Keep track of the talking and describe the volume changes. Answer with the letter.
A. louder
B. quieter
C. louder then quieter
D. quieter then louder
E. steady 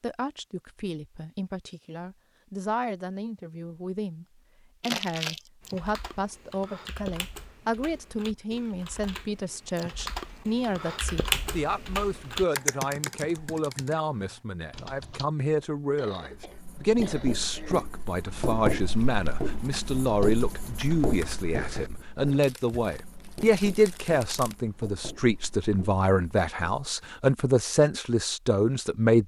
A.